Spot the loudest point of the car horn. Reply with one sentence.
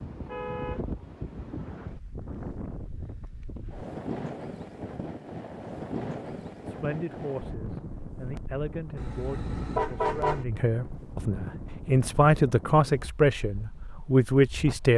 The loudest moment of the car horn is at 10 seconds.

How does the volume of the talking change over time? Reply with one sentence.
The volume of the talking goes up.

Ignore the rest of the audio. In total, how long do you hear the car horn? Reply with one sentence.
You can hear the car horn for 3 seconds altogether.